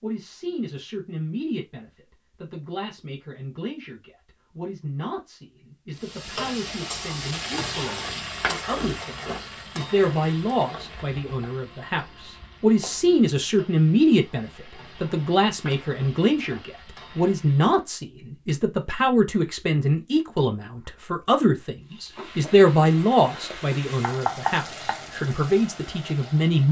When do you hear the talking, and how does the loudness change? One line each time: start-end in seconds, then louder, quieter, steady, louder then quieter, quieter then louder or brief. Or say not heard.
0.0-26.6 louder.